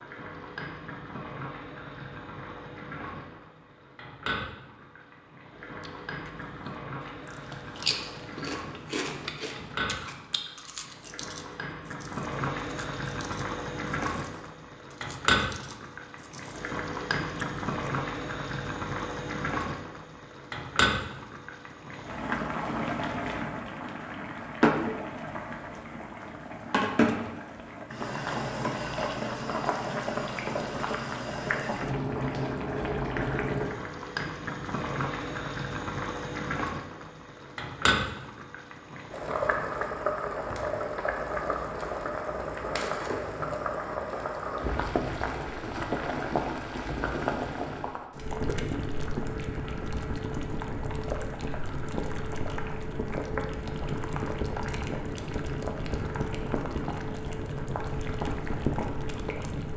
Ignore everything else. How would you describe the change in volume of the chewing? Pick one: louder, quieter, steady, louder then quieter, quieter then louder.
quieter.